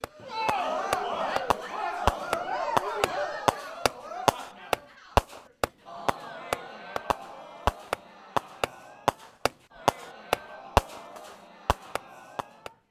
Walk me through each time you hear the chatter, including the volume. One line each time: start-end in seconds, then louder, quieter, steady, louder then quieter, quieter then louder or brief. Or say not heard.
0.0-12.8 quieter.